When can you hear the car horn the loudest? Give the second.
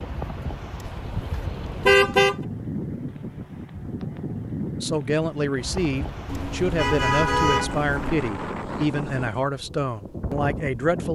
2 s.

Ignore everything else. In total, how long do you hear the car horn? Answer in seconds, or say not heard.
3 s.